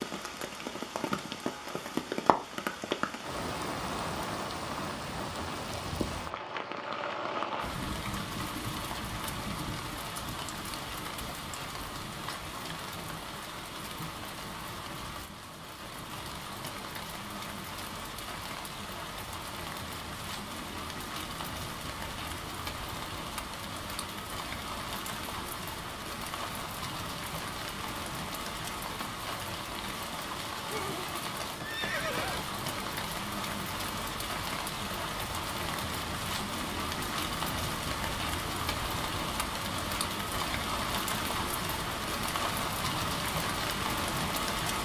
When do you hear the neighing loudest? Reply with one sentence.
The volume of the neighing peaks at 32 seconds.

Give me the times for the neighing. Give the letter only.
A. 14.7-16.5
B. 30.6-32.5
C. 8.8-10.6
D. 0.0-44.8
B.